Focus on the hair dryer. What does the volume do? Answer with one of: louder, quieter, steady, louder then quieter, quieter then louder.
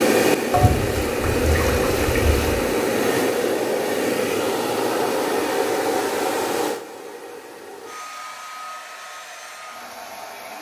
quieter.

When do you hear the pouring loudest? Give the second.
1 s.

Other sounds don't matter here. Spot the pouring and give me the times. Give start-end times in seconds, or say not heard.
0.5-2.5.